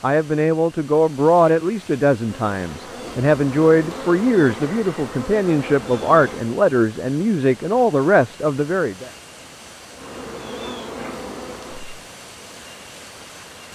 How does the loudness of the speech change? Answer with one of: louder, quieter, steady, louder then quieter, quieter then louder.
steady.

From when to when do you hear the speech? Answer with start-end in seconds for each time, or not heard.
0.0-9.1.